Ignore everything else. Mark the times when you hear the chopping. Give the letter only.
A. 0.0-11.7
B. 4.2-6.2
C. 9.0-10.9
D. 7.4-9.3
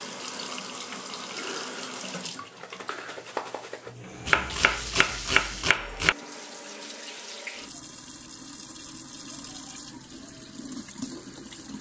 B.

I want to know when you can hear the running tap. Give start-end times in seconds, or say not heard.
0.0-11.7.